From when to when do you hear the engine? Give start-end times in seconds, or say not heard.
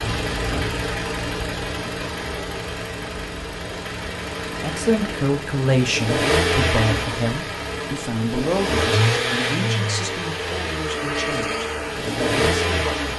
0.0-13.1.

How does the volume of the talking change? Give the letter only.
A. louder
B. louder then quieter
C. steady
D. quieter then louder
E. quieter
E.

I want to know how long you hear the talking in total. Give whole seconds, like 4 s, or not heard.
8 s.